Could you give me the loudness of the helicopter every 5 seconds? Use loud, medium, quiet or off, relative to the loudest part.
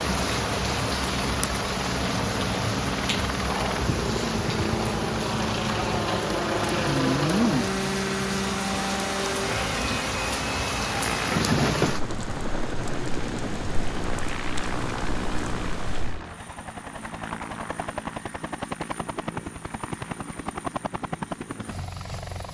loud, loud, medium, medium, medium.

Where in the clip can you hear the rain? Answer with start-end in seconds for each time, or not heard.
0.0-16.2.